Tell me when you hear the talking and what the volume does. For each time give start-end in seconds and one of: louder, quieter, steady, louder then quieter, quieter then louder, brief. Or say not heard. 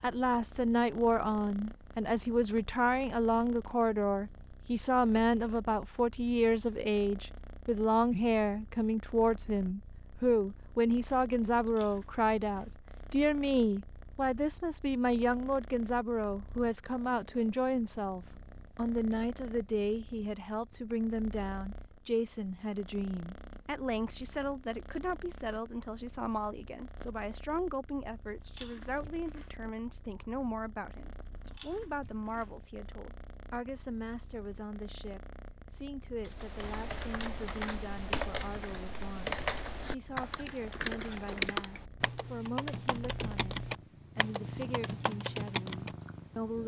0.0-43.5 quieter
44.1-46.6 brief.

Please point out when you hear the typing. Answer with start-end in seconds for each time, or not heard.
36.2-46.1.